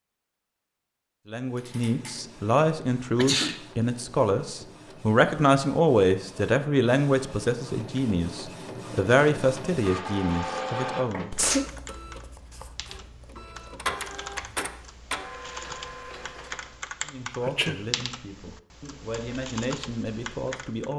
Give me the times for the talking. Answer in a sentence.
You can hear the talking from 1.3 to 11.3 s and from 17.1 to 20.9 s.